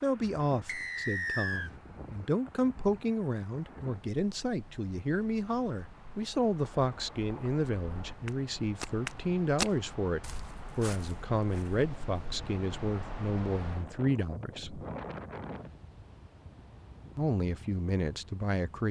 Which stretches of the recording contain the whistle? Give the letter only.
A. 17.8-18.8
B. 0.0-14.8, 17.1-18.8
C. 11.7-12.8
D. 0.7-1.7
D.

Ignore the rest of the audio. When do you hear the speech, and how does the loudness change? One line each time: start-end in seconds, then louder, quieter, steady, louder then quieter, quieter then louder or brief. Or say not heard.
0.0-14.8 steady
17.1-18.8 brief.